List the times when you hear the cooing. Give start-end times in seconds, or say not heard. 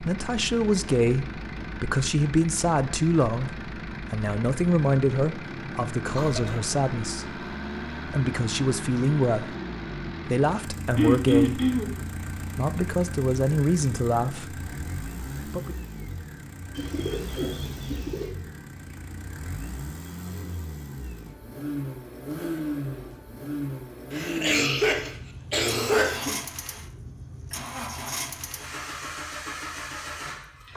16.8-18.3.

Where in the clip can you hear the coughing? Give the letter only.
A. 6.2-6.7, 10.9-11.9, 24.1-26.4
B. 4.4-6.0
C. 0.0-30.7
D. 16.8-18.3
A.